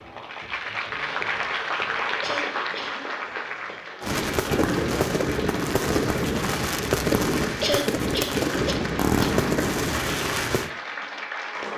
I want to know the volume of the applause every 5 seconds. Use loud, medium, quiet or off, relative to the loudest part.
loud, medium, loud.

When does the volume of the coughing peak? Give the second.
8 s.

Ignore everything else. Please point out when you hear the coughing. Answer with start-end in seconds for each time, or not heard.
2.2-3.0, 7.6-9.2.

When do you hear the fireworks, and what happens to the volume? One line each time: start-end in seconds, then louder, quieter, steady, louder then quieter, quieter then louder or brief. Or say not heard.
4.0-10.7 steady.